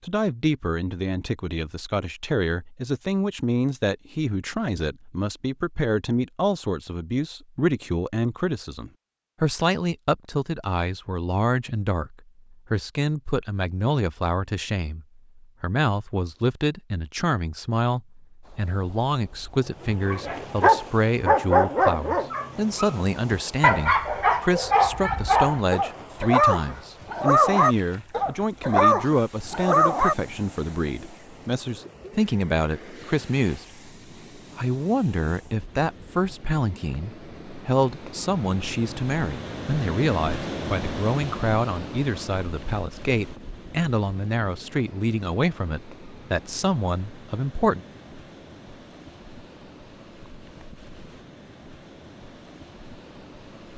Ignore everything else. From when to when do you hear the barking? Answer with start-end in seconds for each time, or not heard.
19.8-30.1.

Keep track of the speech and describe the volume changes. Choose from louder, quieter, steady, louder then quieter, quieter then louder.
steady.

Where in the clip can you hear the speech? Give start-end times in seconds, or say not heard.
0.0-47.8.